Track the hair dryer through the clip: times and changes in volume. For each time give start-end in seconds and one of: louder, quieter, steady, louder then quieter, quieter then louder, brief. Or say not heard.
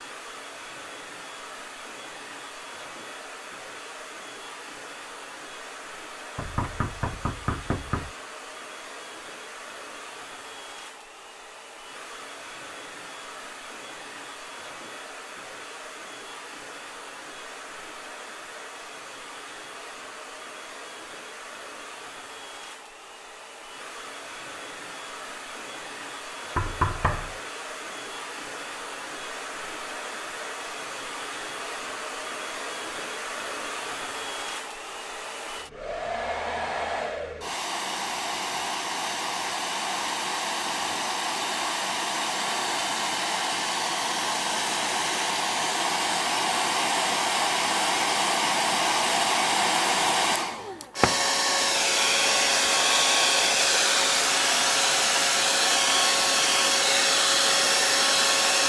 0.0-58.6 louder.